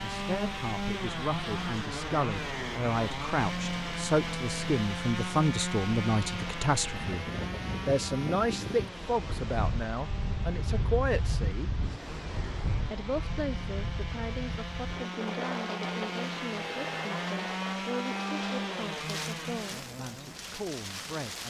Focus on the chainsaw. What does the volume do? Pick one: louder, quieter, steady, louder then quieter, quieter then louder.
quieter then louder.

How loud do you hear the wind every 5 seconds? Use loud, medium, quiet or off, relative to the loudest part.
medium, loud, loud, loud, loud.